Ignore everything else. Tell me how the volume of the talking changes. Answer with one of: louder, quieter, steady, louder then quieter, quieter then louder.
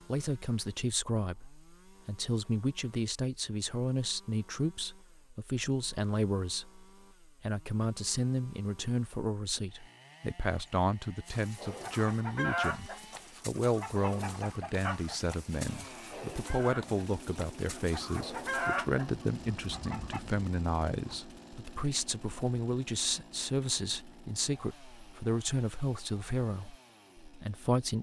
steady.